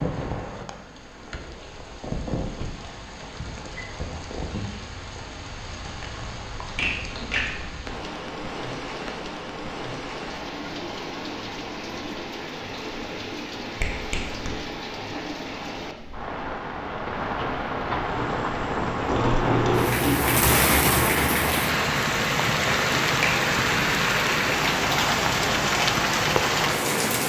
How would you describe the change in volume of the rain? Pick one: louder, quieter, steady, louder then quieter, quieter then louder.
louder.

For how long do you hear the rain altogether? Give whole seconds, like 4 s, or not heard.
27 s.